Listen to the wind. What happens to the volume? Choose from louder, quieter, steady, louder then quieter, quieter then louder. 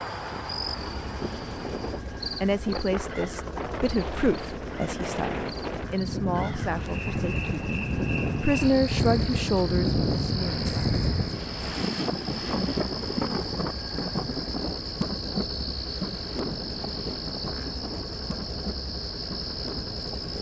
louder then quieter.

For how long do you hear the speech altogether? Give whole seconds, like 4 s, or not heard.
8 s.